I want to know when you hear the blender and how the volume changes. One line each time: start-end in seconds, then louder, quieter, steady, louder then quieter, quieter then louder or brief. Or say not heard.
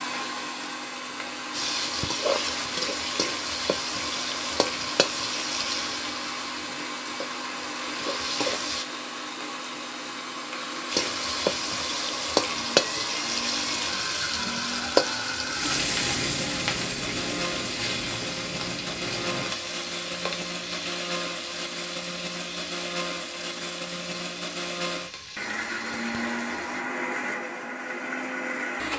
0.0-28.9 steady.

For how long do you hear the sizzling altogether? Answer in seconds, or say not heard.
23 s.